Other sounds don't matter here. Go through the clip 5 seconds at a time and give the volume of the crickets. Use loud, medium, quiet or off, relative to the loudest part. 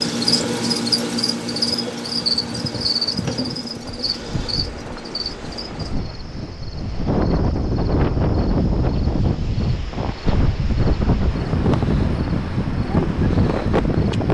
loud, quiet, quiet.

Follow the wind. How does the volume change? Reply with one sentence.
The loudness of the wind goes up.